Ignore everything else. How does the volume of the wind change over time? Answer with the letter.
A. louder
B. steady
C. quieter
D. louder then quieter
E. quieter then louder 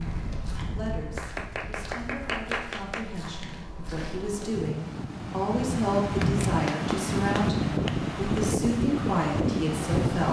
A.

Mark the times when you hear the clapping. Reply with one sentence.
The clapping can be heard from 1.1 to 3.1 s and from 6.2 to 8.4 s.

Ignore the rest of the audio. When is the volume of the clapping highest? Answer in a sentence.
The loudest moment of the clapping is at 2 seconds.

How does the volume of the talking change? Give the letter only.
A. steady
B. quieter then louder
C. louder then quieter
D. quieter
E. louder
E.